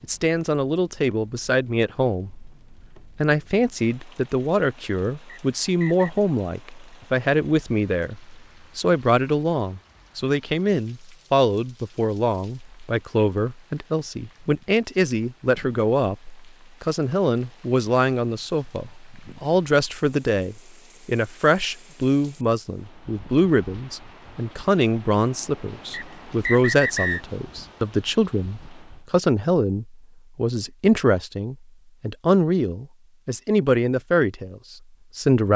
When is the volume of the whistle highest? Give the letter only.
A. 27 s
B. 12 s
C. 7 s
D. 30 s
A.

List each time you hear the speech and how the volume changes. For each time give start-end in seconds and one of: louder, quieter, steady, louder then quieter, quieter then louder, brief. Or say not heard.
0.0-2.5 brief
3.1-35.5 steady.